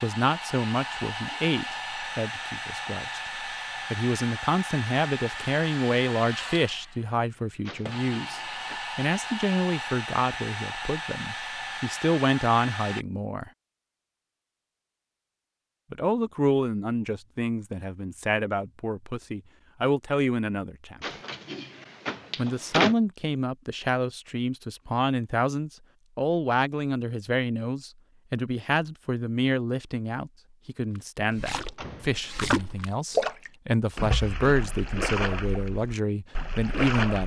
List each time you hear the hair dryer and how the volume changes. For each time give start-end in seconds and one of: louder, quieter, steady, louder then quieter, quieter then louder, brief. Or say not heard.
0.0-13.1 steady.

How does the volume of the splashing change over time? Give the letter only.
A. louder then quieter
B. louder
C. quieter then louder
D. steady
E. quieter
A.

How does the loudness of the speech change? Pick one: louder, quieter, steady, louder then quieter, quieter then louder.
steady.